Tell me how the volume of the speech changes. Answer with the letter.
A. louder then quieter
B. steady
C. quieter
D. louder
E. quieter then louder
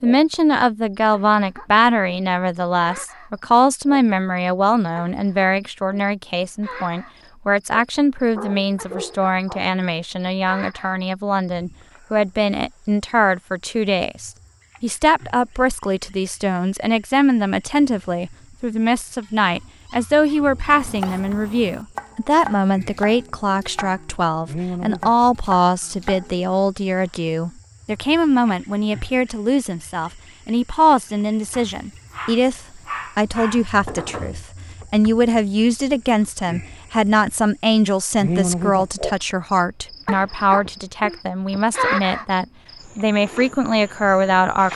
B.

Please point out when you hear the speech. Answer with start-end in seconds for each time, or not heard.
0.0-44.7.